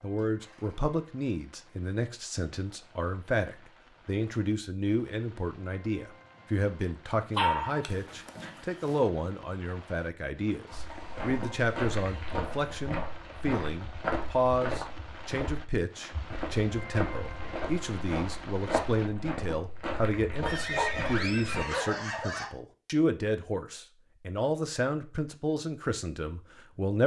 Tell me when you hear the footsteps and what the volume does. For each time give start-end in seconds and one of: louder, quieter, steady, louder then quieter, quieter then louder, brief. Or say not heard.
10.7-21.6 steady.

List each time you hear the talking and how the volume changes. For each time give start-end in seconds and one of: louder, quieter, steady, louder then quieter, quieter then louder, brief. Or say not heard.
0.0-27.0 steady.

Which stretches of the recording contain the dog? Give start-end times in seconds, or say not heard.
7.3-9.0, 19.9-21.9.